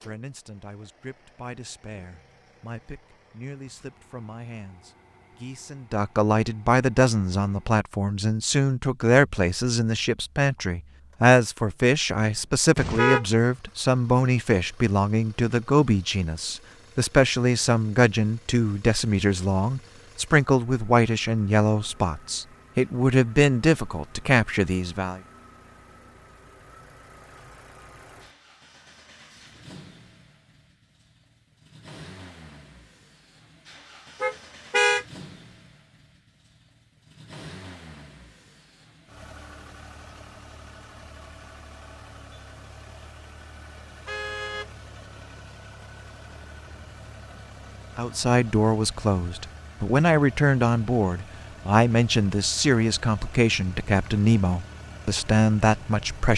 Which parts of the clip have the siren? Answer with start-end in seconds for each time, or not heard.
not heard.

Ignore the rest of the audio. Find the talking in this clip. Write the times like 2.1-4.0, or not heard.
0.1-25.2, 48.0-56.3.